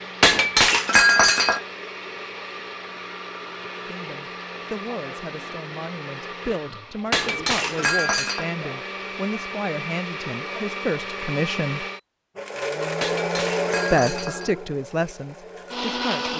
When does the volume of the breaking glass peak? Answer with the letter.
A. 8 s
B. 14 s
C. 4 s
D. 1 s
D.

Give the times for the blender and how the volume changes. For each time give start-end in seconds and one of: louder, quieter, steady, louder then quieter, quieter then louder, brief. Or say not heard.
0.0-16.3 louder.